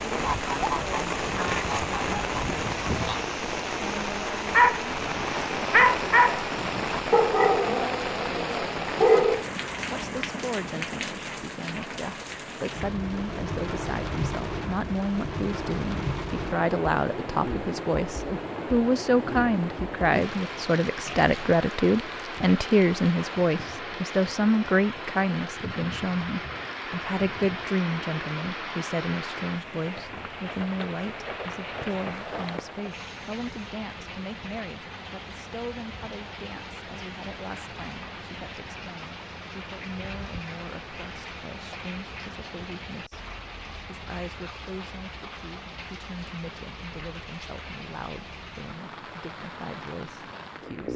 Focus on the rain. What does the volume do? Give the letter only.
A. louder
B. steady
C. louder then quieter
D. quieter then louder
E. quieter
E.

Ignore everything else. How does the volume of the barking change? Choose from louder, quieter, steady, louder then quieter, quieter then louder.
louder then quieter.